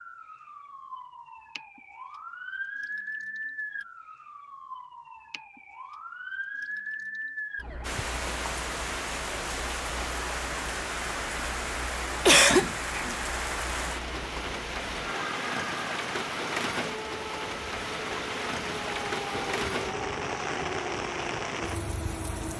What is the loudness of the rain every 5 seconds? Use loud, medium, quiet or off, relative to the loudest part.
off, loud, loud, loud, loud.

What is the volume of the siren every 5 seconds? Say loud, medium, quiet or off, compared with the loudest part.
loud, loud, medium, loud, loud.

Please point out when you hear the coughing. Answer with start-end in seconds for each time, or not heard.
12.2-13.2.